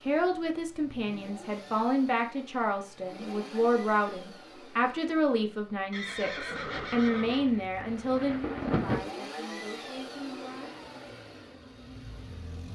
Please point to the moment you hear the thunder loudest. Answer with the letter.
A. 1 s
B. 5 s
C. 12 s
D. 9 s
D.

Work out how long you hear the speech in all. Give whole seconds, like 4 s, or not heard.
11 s.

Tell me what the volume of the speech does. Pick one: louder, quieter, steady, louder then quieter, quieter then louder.
quieter.